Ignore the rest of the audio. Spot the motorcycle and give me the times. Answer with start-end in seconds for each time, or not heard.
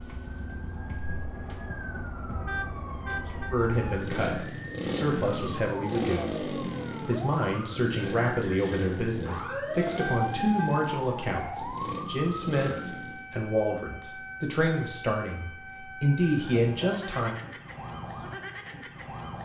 0.0-13.2.